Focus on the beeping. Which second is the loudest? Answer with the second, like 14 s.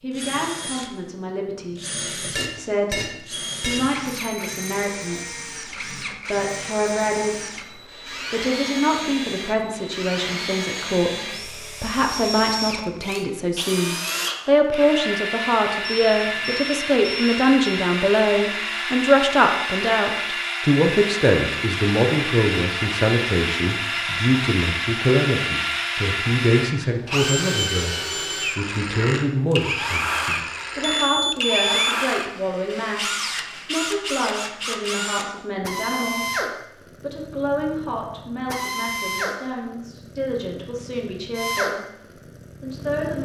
32 s.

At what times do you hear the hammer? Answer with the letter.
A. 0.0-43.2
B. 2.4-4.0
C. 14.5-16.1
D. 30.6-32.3
B.